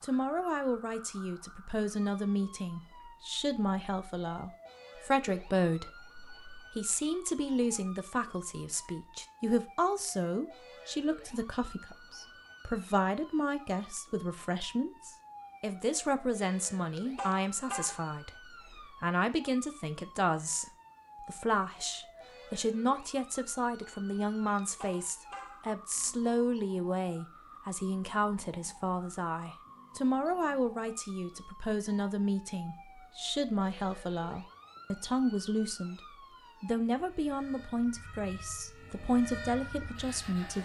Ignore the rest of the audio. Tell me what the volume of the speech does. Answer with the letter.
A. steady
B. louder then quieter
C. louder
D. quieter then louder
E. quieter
A.